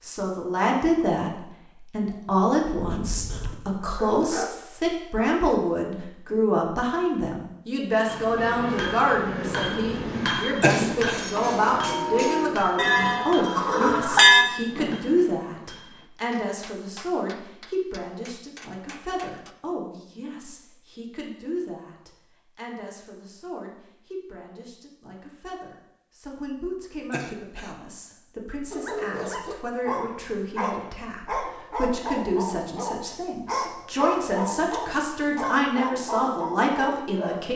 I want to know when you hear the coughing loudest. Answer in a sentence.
The volume of the coughing peaks at 11 seconds.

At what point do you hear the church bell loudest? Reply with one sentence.
The loudest moment of the church bell is at 14 seconds.